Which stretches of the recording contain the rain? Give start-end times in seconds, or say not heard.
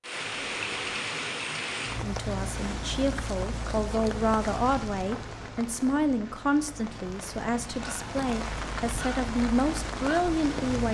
0.0-10.8.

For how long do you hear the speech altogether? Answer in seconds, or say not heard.
9 s.